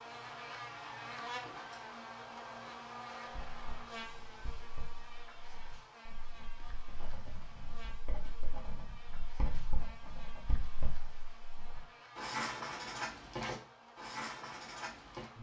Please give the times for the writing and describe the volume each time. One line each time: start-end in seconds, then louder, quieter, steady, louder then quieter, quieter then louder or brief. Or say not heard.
3.2-15.3 louder.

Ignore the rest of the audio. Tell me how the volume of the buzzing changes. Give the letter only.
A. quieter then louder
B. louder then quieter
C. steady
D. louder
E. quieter
E.